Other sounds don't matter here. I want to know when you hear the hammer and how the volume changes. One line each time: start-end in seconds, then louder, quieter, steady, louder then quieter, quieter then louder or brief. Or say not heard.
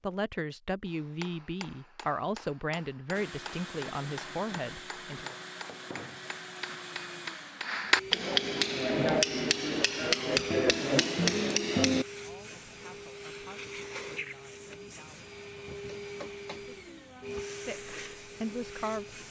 0.8-12.1 louder.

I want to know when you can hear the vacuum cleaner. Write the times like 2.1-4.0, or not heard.
3.1-19.2.